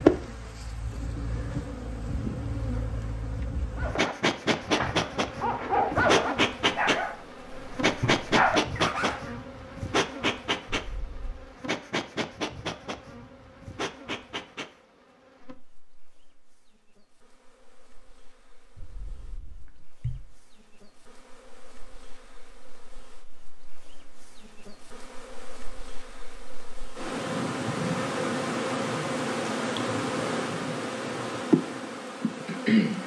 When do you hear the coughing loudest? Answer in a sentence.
The loudest moment of the coughing is at 20 seconds.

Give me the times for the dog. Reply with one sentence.
You can hear the dog from 3.8 to 9.3 s.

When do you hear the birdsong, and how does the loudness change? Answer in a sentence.
You can't hear the birdsong here.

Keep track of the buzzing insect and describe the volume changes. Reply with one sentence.
The loudness of the buzzing insect goes down, then up.